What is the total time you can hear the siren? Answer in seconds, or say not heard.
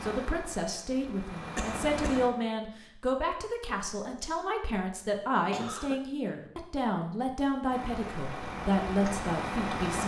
not heard.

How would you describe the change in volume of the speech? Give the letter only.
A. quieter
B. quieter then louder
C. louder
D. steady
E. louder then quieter
D.